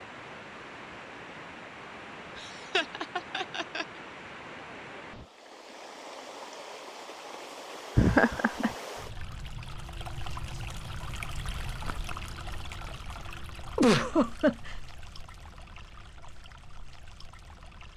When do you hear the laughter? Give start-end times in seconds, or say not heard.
2.4-3.9, 8.0-8.7, 13.8-14.8.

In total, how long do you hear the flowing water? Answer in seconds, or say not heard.
18 s.